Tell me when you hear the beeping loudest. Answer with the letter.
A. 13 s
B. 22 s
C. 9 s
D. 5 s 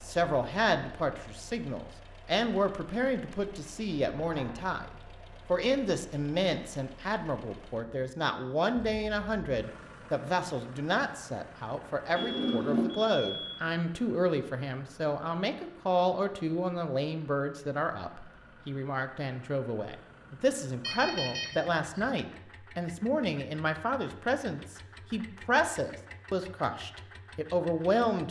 A.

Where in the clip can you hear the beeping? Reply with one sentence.
You can hear the beeping from 4.2 to 4.7 s, from 12.2 to 13.6 s and from 20.8 to 22.1 s.